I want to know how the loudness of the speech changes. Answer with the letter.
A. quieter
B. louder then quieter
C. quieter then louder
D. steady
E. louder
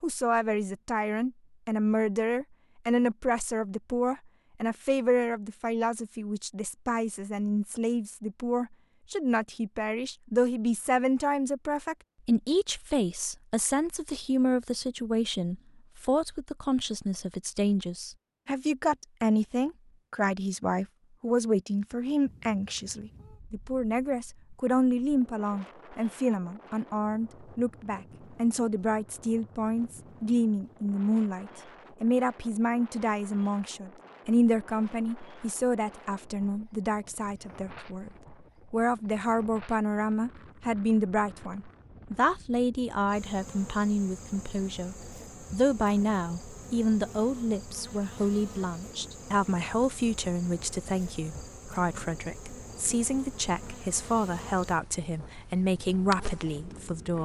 D.